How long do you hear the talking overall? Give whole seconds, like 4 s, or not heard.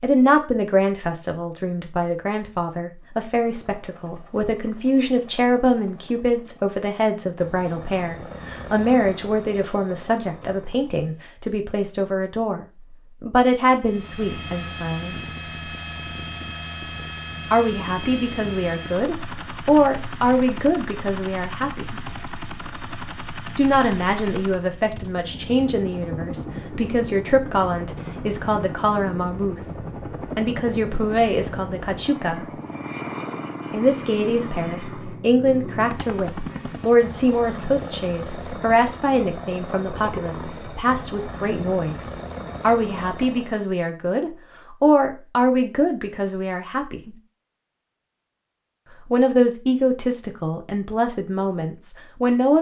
45 s.